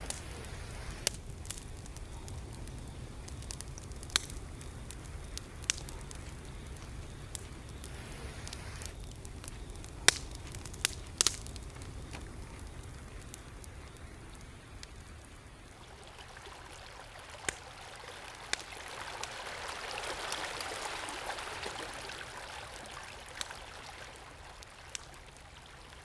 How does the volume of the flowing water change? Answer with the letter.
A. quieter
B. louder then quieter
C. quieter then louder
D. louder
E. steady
D.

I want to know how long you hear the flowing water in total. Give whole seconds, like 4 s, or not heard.
26 s.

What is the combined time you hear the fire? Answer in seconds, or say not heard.
26 s.